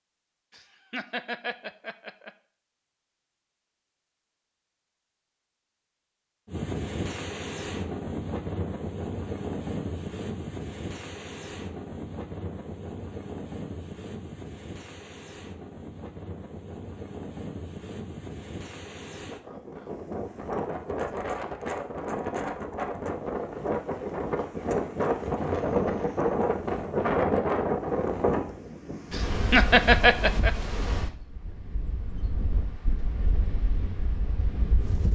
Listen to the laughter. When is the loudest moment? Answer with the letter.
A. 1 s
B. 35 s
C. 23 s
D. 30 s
D.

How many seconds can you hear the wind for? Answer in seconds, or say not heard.
29 s.